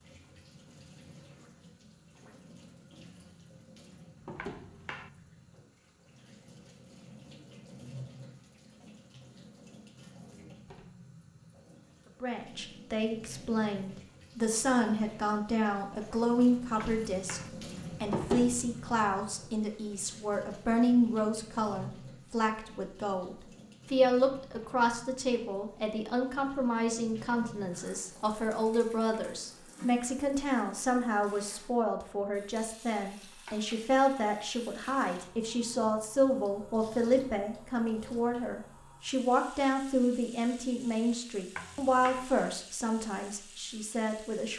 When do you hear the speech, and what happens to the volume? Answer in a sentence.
You can hear the speech from 12.2 to 17.4 s, getting louder; and from 18.0 to 44.5 s, at a steady volume.